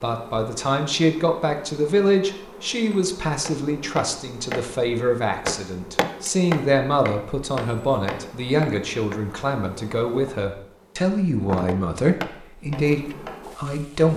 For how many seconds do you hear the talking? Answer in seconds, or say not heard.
14 s.